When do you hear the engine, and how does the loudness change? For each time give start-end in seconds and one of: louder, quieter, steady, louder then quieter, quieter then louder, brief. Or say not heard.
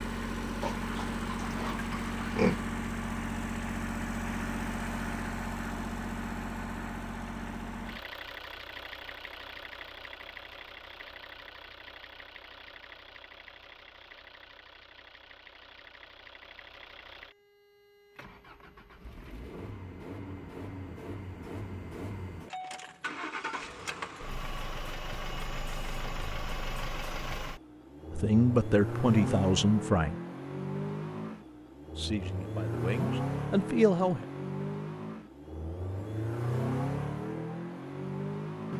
0.0-38.7 quieter then louder.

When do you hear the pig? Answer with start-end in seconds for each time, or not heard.
0.6-2.6.